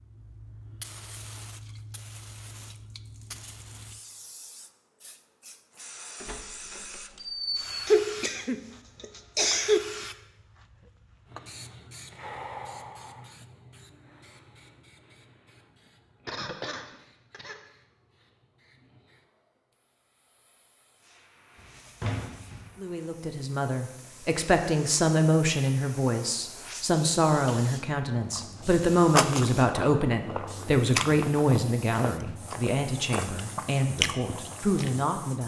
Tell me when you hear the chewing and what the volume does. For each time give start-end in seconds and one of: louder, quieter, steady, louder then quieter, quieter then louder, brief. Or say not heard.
28.2-35.0 quieter then louder.